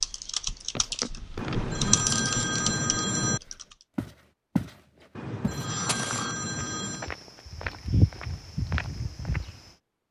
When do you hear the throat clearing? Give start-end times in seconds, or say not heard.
0.8-2.0, 5.6-6.4.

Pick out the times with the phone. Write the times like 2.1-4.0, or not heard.
1.4-3.4, 5.2-7.1.